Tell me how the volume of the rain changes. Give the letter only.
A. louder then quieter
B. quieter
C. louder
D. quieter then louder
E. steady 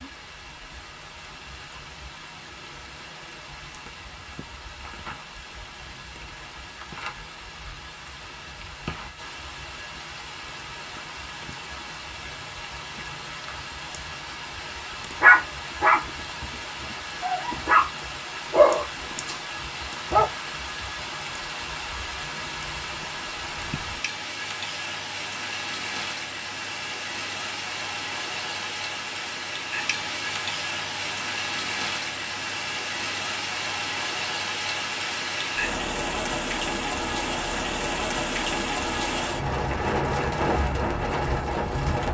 C.